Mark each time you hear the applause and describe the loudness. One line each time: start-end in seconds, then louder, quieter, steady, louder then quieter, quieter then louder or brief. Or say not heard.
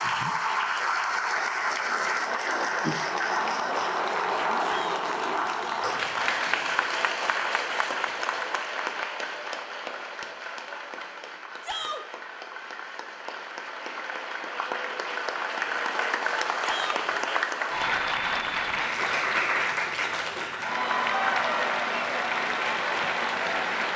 0.0-23.9 quieter then louder.